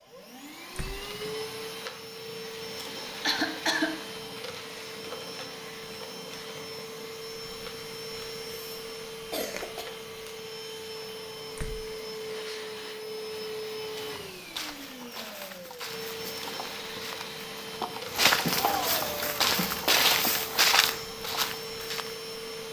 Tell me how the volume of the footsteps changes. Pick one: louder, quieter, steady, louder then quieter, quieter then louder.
louder.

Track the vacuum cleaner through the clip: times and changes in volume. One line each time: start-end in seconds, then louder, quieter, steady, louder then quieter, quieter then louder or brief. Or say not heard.
0.0-22.6 steady.